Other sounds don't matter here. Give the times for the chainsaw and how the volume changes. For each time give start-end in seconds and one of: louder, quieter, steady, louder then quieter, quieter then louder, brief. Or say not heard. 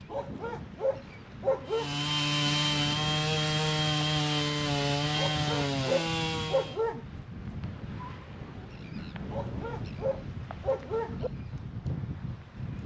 1.6-6.8 steady.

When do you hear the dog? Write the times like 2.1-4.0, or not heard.
0.1-1.9, 5.2-7.0, 9.3-11.3.